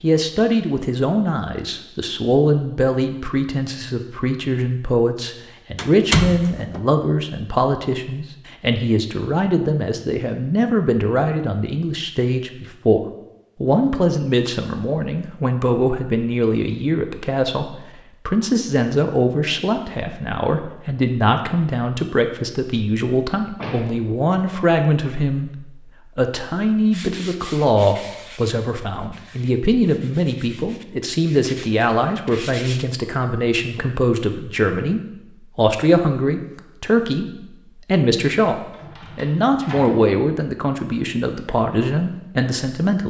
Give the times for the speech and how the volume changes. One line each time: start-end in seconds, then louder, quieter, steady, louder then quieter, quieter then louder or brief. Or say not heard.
0.0-43.0 steady.